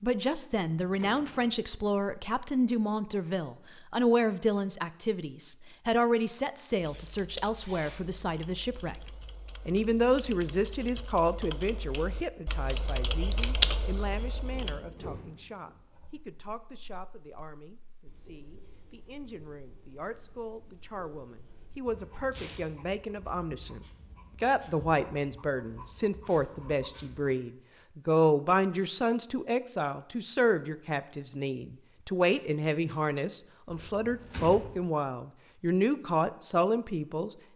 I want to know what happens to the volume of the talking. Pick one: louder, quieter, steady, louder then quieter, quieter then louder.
quieter then louder.